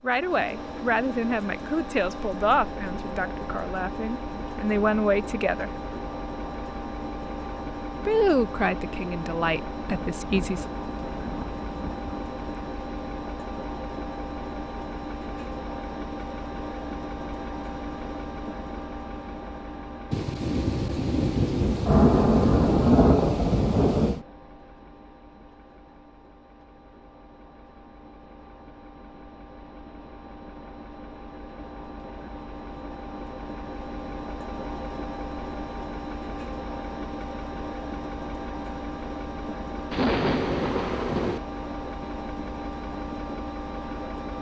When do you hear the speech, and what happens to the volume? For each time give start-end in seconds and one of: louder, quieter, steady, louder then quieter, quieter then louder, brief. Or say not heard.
0.0-5.7 quieter then louder
8.1-10.8 brief.